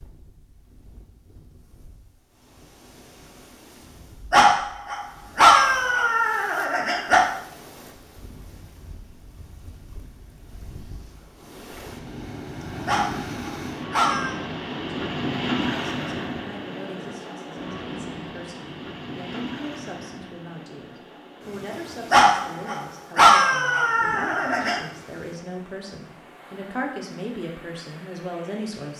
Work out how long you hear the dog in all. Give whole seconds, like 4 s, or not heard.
7 s.